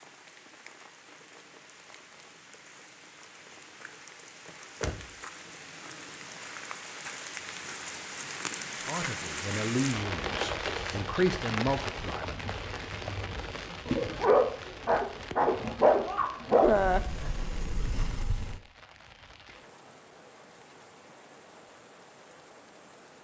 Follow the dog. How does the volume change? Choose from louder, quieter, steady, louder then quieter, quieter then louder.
louder.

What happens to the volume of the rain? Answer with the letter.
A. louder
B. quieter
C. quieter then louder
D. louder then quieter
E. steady
D.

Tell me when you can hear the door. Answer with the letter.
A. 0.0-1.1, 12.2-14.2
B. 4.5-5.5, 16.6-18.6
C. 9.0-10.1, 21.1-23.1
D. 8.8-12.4
B.